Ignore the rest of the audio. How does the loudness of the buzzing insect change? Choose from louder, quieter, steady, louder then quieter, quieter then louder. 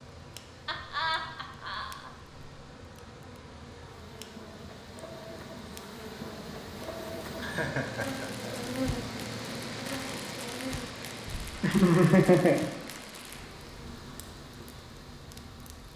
louder then quieter.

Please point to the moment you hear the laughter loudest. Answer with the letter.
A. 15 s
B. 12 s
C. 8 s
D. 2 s
B.